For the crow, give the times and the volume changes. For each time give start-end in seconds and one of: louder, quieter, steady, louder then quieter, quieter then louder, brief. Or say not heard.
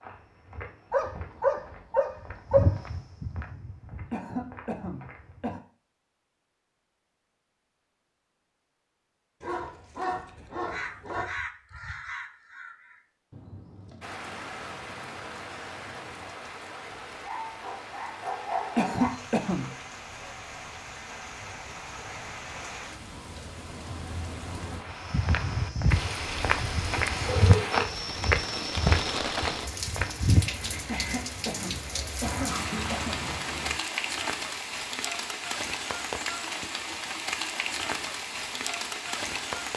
10.6-16.4 quieter.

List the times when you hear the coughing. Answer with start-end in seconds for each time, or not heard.
4.1-5.6, 18.8-19.7, 30.9-33.2.